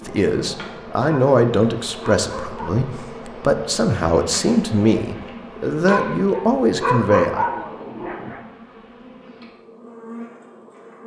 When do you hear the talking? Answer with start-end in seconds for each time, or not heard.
0.1-7.5.